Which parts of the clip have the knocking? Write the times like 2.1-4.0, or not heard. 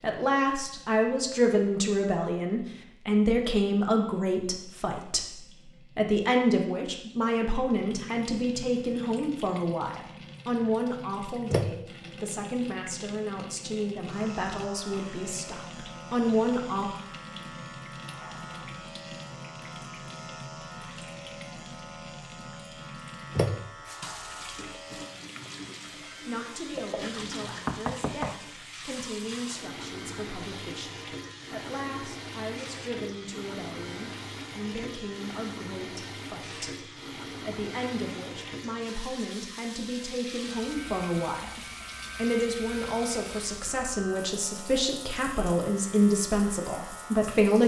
27.6-28.4.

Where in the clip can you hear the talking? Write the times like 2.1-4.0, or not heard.
0.0-5.2, 6.0-16.9, 26.2-47.6.